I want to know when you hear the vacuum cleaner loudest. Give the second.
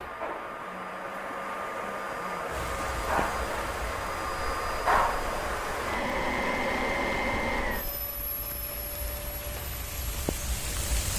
5 s.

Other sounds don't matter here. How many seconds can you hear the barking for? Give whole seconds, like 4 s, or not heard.
not heard.